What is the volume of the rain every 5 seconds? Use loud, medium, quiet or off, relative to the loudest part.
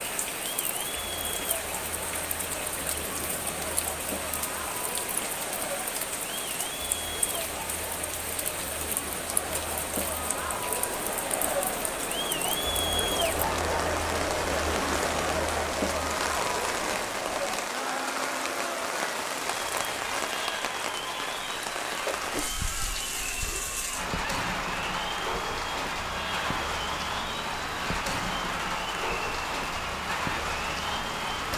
medium, medium, loud, loud, loud, loud, loud.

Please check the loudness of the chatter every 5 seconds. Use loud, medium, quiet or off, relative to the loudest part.
medium, medium, loud, loud, medium, medium, medium.